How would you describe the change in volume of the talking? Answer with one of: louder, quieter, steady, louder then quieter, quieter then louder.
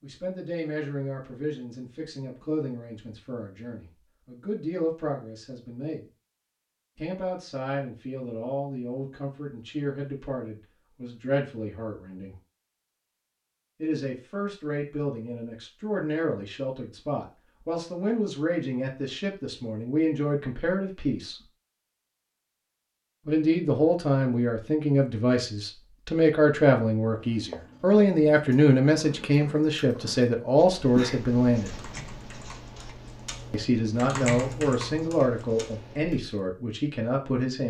louder.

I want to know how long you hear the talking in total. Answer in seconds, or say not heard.
32 s.